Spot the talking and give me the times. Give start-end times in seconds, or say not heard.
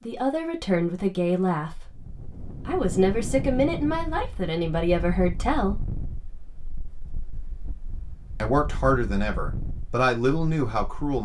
0.0-6.0, 8.4-11.1.